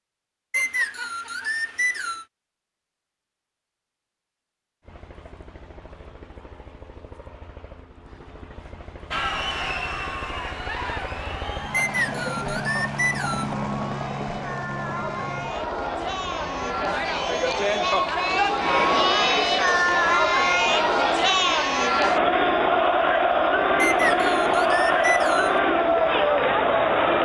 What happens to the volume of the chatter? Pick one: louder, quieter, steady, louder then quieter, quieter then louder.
louder.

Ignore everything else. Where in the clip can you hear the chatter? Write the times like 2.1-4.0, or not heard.
9.1-27.1.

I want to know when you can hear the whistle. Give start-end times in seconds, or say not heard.
0.5-2.2, 11.7-13.6, 23.8-25.6.